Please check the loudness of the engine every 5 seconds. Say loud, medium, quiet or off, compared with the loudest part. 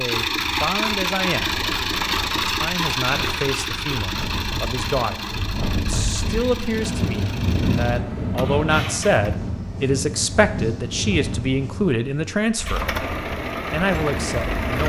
loud, medium, loud.